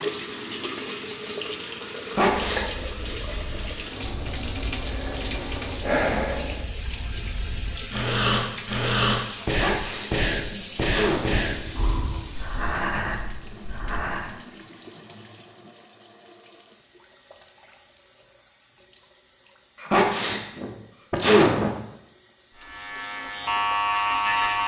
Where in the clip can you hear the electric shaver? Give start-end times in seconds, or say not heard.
22.6-24.6.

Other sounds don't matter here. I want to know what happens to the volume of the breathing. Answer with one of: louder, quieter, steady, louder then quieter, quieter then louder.
louder then quieter.